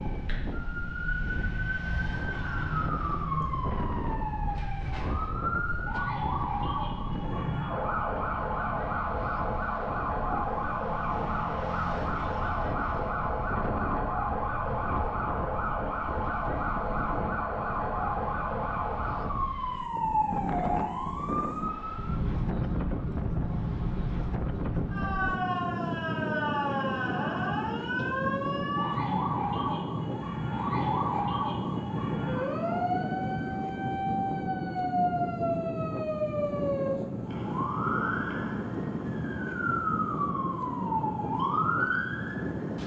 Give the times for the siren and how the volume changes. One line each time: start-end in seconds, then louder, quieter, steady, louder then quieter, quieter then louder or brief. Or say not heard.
0.0-42.8 steady.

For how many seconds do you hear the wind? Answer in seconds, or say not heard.
43 s.